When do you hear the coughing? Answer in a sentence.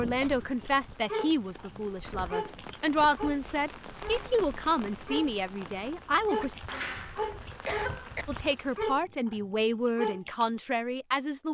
The coughing can be heard from 0.1 to 0.7 s and from 6.7 to 8.2 s.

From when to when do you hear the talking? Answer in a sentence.
You can hear the talking from 0.0 to 6.6 s and from 8.2 to 11.5 s.